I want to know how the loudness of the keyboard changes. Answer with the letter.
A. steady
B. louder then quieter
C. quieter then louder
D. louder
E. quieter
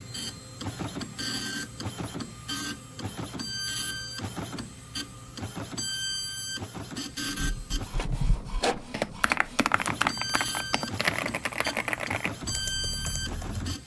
B.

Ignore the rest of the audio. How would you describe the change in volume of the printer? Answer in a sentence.
The loudness of the printer stays about the same.